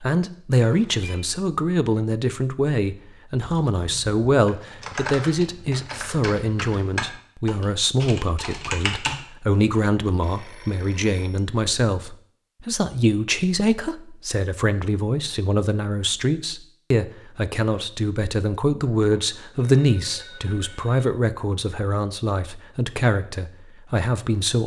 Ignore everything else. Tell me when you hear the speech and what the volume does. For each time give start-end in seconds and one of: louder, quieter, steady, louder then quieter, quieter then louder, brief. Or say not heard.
0.0-24.6 steady.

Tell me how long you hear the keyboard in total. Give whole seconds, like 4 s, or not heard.
6 s.